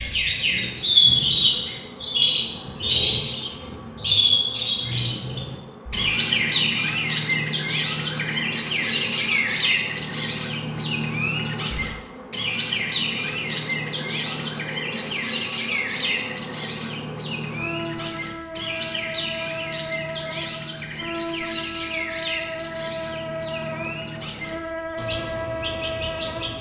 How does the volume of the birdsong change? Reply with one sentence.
The loudness of the birdsong goes down.